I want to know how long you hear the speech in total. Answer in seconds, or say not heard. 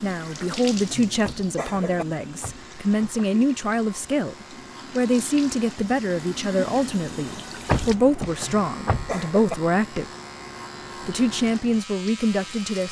12 s.